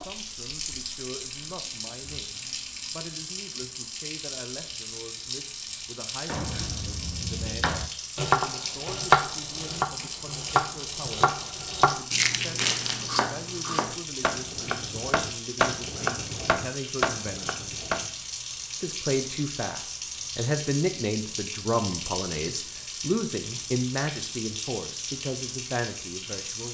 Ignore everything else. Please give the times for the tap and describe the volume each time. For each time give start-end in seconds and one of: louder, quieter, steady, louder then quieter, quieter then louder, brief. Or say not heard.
0.0-26.6 steady.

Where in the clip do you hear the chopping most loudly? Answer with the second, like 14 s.
9 s.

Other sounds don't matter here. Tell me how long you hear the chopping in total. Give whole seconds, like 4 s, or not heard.
12 s.